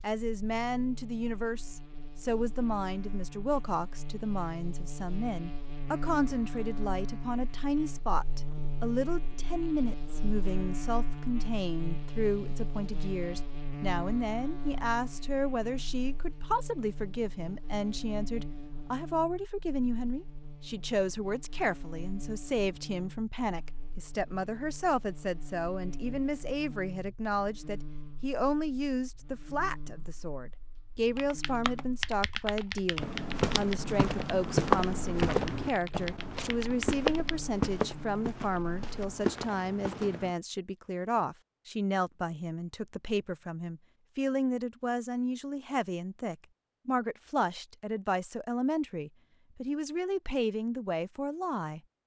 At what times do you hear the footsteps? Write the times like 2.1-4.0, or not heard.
33.0-40.4.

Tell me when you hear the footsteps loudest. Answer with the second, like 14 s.
35 s.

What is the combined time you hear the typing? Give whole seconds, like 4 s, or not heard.
6 s.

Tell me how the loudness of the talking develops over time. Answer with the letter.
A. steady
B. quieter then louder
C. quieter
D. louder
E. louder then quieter
A.